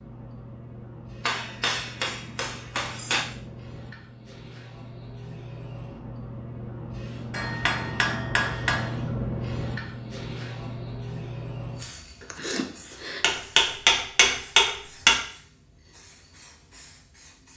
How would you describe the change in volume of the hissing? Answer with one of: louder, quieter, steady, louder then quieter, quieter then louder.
louder then quieter.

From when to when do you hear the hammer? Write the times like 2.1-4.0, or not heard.
1.2-3.2, 7.3-8.9, 13.2-15.2.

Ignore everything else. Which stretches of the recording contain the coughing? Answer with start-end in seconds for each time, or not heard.
12.2-13.2.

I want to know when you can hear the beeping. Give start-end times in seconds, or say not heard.
not heard.